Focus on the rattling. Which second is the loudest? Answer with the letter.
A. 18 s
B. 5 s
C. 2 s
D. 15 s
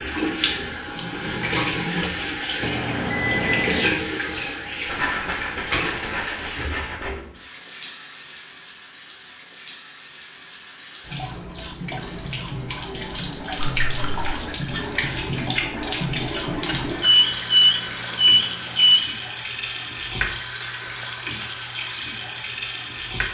B.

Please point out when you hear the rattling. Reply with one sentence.
The rattling can be heard from 4.8 to 7.2 s and from 13.7 to 14.3 s.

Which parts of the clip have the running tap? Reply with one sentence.
The running tap can be heard from 0.0 to 23.2 s.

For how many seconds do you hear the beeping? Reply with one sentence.
You can hear the beeping for 3 seconds altogether.